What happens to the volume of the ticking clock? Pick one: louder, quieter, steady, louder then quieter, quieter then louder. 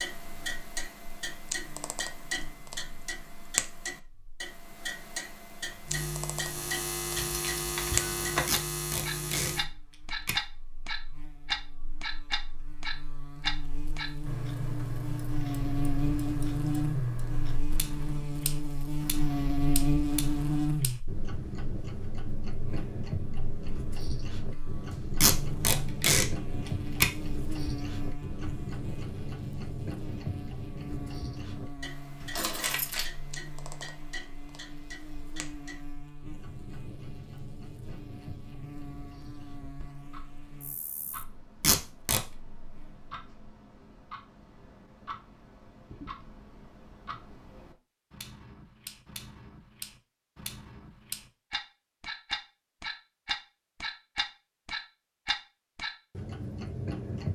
quieter then louder.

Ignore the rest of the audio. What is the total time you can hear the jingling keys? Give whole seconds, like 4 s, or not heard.
2 s.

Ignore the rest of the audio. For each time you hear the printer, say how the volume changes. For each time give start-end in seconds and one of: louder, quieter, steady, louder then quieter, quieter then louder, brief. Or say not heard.
not heard.